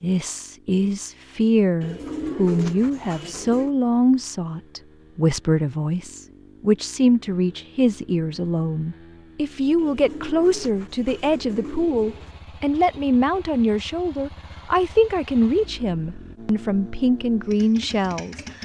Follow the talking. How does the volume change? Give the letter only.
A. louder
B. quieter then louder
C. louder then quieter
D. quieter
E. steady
E.